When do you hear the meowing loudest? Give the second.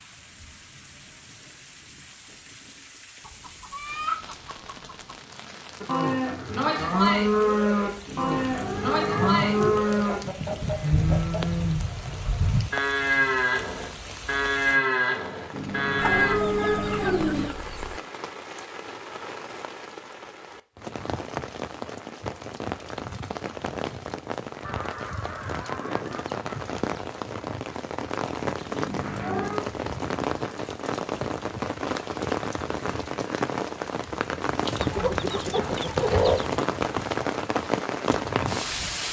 17 s.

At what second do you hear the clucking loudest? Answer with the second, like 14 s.
36 s.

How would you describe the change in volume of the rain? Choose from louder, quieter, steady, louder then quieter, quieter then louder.
louder.